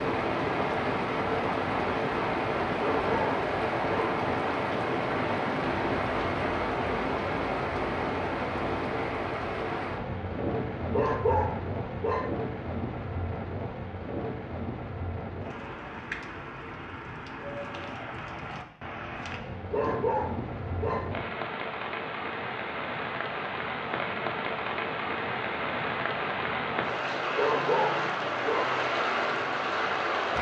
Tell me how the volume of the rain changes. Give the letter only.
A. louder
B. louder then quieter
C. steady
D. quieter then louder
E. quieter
D.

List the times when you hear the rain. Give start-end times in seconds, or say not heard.
0.0-30.3.